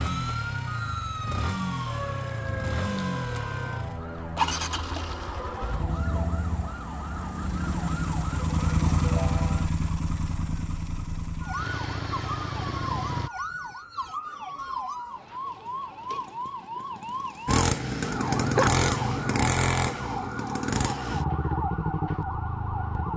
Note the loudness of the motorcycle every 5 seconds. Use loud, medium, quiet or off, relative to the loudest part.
medium, medium, medium, loud, medium.